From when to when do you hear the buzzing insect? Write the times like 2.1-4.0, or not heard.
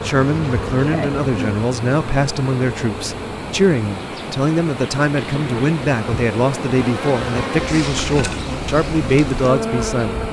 0.0-10.2.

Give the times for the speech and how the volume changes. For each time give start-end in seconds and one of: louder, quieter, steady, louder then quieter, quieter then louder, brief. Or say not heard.
0.0-10.2 steady.